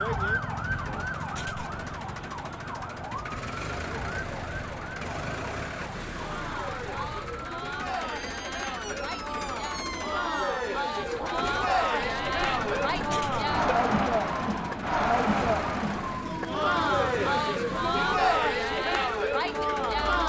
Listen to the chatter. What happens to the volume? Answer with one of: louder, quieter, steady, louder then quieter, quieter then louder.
louder.